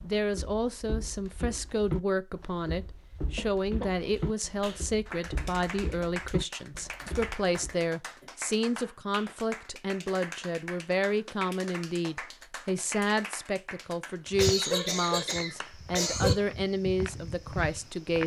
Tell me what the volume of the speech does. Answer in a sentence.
The loudness of the speech stays about the same.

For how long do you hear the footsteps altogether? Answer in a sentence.
The footsteps can be heard for 12 seconds in total.